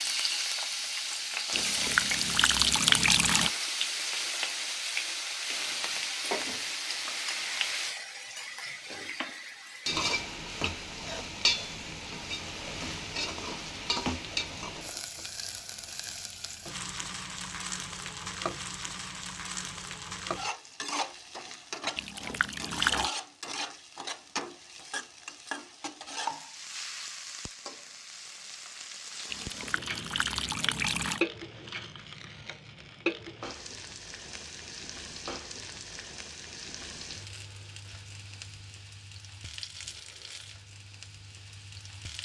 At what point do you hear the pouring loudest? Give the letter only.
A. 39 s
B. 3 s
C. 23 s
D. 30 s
B.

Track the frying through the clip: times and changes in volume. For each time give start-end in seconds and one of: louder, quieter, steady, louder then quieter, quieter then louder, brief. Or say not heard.
0.0-42.2 quieter.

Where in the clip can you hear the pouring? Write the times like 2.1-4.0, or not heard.
1.5-3.5, 21.9-23.1, 29.3-31.2.